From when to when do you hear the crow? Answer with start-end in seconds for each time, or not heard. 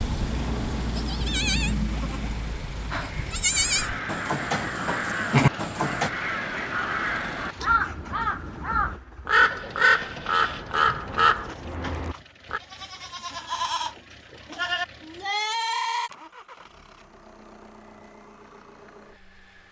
2.9-12.6.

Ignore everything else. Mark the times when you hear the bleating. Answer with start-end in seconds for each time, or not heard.
0.0-6.1, 10.7-16.1.